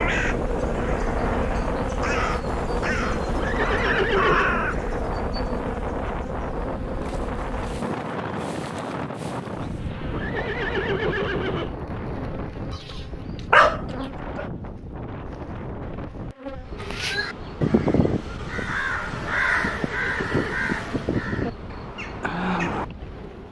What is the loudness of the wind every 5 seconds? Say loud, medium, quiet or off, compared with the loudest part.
loud, loud, medium, medium, quiet.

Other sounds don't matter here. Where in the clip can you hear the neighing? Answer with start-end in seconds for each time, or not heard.
3.3-4.5, 10.1-11.8, 19.6-20.6.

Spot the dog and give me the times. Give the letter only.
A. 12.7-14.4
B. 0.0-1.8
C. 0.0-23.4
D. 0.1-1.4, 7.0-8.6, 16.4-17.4
A.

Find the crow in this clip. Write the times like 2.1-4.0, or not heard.
0.0-5.0, 16.8-22.9.